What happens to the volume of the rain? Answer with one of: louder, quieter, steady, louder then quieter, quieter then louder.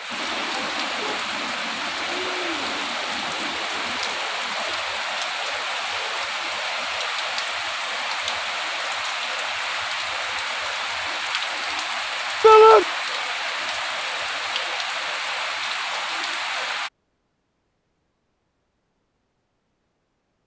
steady.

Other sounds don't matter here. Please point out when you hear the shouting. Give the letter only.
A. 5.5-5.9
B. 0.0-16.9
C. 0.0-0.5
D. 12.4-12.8
D.